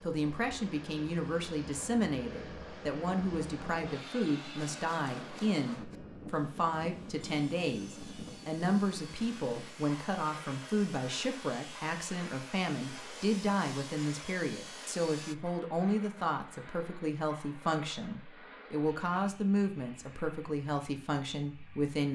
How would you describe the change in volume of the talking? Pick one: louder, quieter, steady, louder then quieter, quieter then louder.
steady.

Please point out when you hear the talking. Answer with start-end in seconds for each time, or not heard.
0.0-22.1.